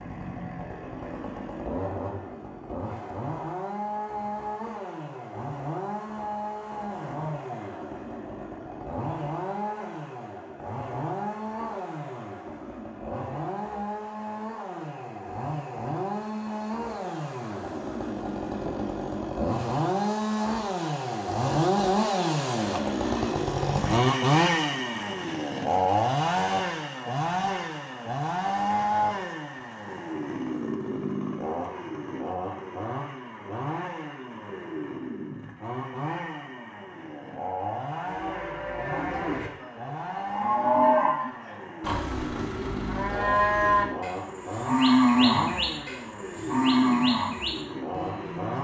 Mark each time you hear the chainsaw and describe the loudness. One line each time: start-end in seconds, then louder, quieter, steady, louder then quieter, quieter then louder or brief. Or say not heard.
0.0-48.5 louder then quieter.